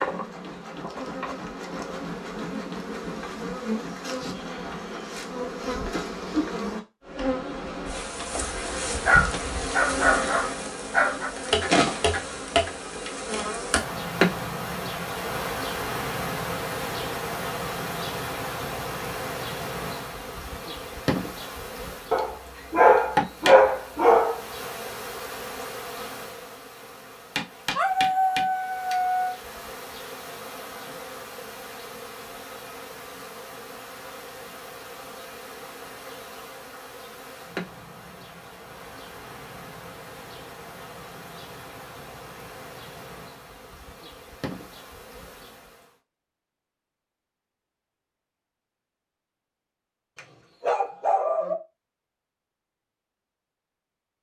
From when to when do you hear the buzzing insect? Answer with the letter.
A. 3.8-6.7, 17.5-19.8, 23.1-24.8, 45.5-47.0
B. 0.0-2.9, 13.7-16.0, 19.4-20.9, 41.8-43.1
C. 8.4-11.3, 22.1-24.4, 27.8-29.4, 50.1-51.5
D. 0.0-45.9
D.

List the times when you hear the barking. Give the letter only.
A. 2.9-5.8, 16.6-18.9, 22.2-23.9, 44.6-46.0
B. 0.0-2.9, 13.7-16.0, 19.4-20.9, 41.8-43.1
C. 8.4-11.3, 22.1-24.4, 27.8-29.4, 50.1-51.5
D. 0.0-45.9
C.